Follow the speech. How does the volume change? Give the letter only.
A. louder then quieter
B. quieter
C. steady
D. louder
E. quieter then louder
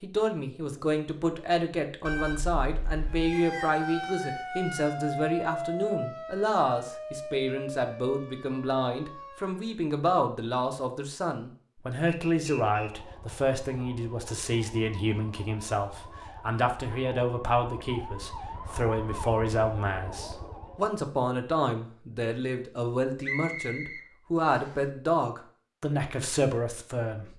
C.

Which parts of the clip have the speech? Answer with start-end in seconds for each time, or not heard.
0.0-27.3.